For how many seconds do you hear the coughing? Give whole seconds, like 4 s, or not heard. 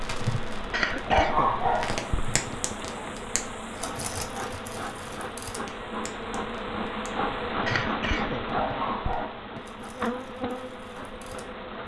4 s.